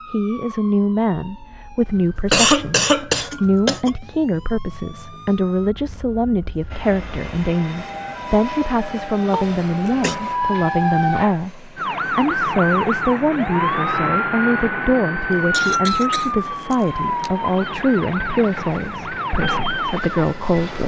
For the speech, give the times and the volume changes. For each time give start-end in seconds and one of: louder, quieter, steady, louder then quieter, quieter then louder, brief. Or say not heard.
0.1-20.8 steady.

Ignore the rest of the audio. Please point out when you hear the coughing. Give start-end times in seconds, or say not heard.
2.3-3.9, 9.3-10.2, 15.3-17.3.